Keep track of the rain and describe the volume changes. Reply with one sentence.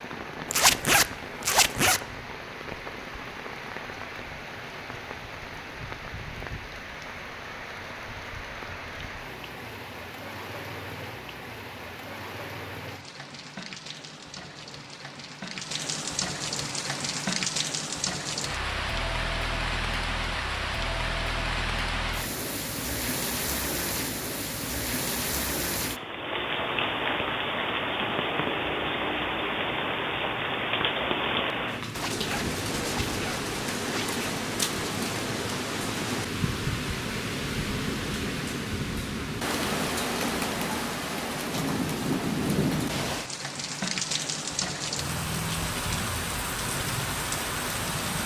The volume of the rain goes up.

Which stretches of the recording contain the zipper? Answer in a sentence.
You can hear the zipper from 0.5 to 2.0 s and from 31.9 to 34.2 s.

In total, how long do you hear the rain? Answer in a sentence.
The rain can be heard for 48 seconds in total.